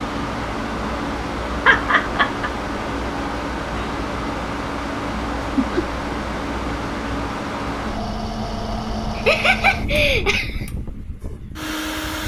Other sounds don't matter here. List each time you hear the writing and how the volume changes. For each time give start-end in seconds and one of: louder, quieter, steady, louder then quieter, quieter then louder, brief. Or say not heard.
not heard.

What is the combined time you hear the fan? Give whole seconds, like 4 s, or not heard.
12 s.